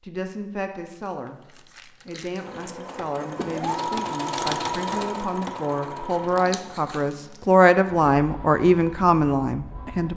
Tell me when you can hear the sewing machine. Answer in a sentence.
You can hear the sewing machine from 2.4 to 10.1 s.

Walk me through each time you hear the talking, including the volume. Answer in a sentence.
You can hear the talking briefly from 0.0 to 1.4 s; and from 2.0 to 10.1 s, getting louder.